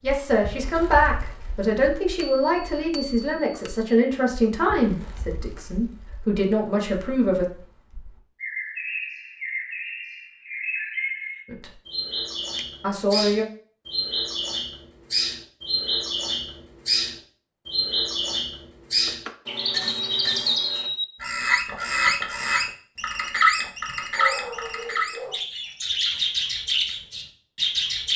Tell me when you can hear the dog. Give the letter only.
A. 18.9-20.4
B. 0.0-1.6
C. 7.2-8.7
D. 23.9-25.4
D.